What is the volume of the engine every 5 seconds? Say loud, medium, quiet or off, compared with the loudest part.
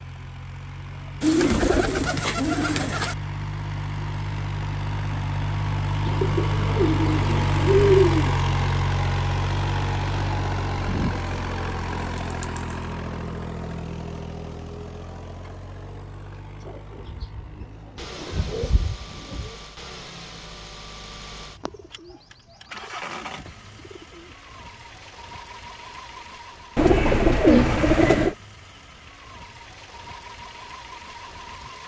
medium, loud, medium, quiet, quiet, quiet, quiet.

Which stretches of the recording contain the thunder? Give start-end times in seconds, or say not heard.
not heard.